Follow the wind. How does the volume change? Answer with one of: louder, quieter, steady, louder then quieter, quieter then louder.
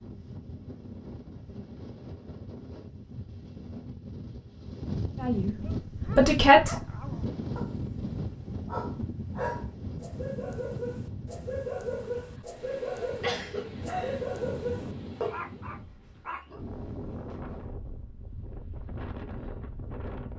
louder then quieter.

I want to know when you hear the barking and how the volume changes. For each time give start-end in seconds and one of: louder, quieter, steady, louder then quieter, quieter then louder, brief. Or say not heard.
5.6-16.6 louder.